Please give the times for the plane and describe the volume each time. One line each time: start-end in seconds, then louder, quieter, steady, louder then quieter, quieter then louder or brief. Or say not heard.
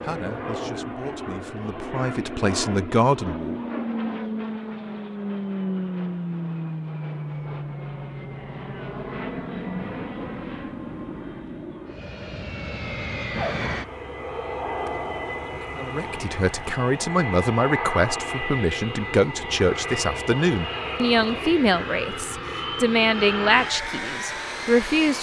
0.0-25.1 steady.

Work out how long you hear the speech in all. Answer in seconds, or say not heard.
13 s.